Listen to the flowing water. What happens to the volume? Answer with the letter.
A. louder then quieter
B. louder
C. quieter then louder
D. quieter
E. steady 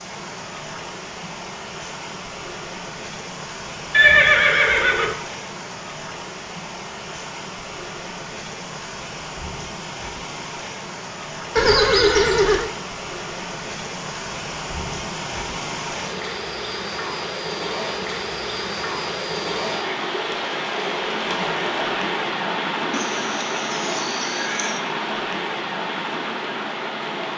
B.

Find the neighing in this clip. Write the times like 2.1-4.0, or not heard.
3.9-5.2, 11.6-12.7, 22.9-24.8.